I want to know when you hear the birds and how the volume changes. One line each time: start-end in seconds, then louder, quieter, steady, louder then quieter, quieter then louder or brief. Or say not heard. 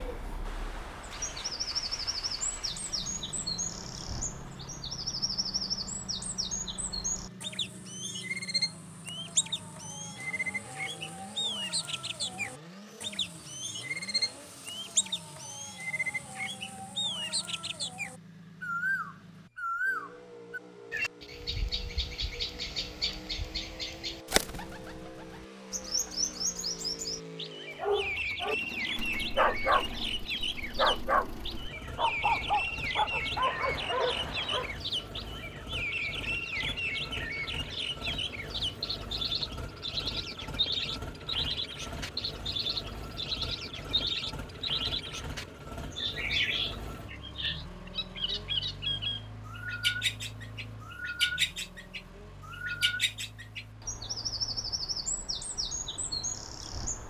0.0-57.0 steady.